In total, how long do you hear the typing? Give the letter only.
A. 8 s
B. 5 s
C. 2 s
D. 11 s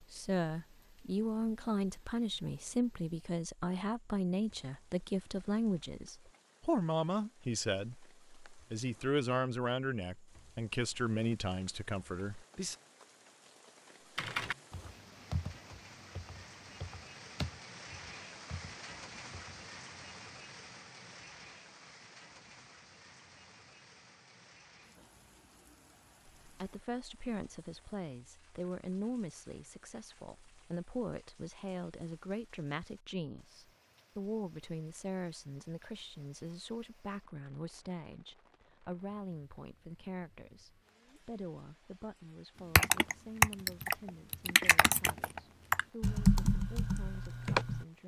D.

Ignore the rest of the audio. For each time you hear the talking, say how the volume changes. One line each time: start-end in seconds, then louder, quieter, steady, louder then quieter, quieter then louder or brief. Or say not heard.
0.0-12.8 steady
26.4-48.0 quieter.